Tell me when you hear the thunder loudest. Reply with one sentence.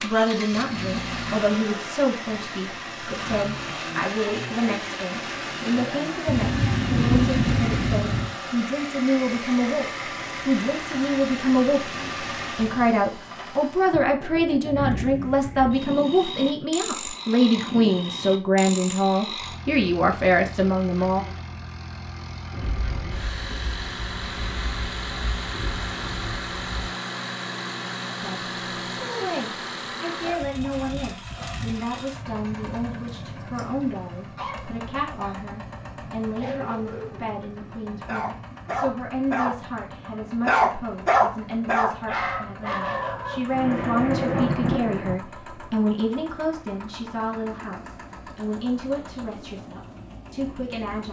The volume of the thunder peaks at 7 seconds.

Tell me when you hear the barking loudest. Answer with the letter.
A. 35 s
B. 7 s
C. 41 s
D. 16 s
C.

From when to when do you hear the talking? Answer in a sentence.
You can hear the talking from 0.0 to 9.8 s, from 10.4 to 21.2 s and from 28.2 to 51.0 s.